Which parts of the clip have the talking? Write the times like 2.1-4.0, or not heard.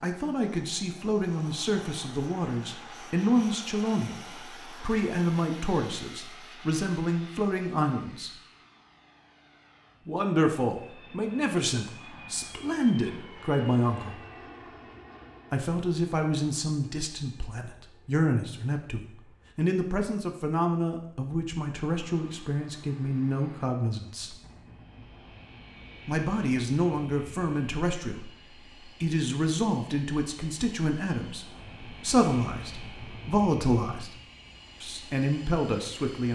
0.0-8.3, 10.1-14.2, 15.5-24.4, 26.1-34.1, 34.8-36.3.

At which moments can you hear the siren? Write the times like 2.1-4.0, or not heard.
not heard.